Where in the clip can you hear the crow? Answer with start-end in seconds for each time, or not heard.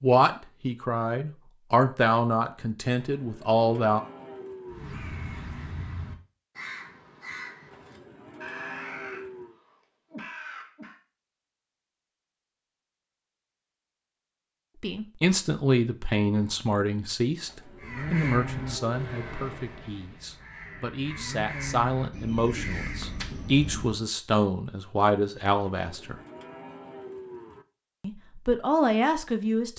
4.7-11.0, 17.8-24.1.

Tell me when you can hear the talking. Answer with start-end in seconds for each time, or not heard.
0.0-4.0, 14.8-26.1, 28.0-29.7.